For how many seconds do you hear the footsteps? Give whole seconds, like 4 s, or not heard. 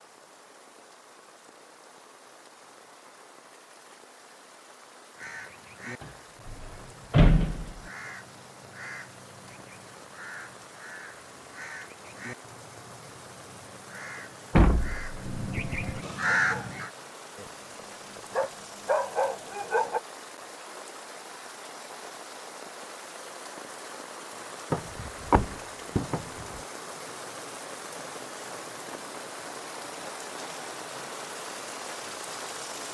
not heard.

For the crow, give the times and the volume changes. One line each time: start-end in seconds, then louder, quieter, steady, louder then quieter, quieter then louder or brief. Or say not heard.
5.2-16.9 louder.